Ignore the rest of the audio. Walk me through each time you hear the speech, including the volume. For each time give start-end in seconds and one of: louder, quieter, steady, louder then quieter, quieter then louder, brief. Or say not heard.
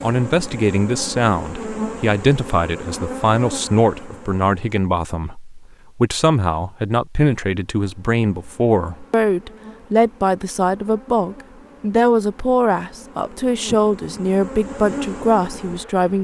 0.0-16.1 steady.